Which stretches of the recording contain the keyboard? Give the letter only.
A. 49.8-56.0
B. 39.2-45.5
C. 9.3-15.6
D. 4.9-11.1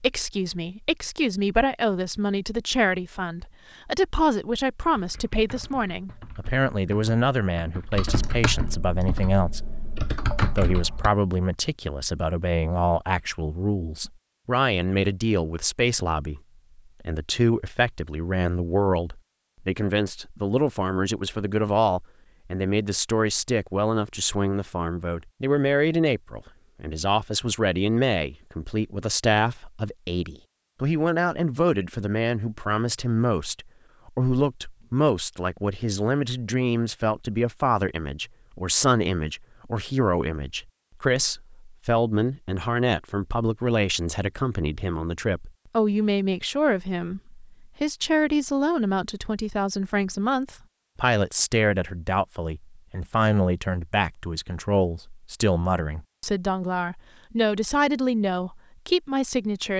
D.